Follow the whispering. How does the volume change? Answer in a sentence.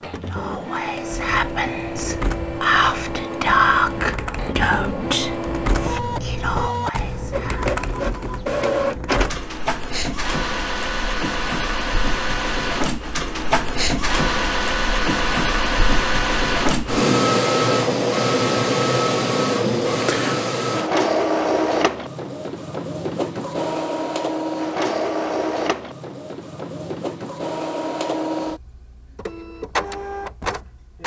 The volume of the whispering goes up, then down.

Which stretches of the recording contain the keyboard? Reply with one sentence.
You can hear the keyboard from 1.2 to 9.5 s.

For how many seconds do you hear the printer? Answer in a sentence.
You can hear the printer for 31 seconds altogether.